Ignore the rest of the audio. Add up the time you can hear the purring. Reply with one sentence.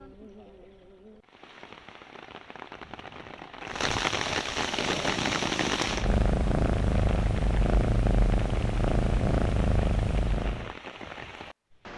You can hear the purring for 6 seconds altogether.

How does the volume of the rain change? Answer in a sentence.
The loudness of the rain goes up, then down.